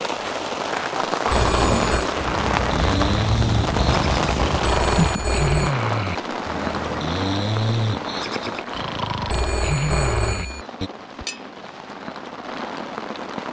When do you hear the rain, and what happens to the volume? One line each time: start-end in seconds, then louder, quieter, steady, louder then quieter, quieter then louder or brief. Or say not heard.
0.0-13.4 quieter.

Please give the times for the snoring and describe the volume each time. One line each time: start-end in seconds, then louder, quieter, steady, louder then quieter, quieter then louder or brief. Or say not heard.
1.2-10.9 steady.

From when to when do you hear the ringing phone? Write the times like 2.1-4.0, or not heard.
1.2-2.0, 4.6-5.8, 9.2-10.7.